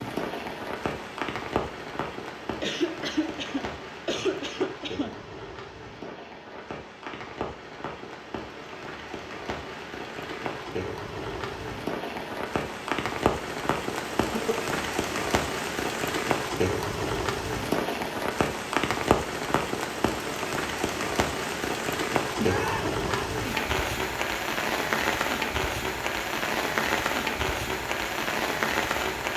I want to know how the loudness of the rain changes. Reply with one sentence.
The loudness of the rain goes up.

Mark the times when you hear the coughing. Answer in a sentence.
The coughing can be heard from 2.6 to 5.2 s, from 14.3 to 14.8 s and from 22.4 to 23.3 s.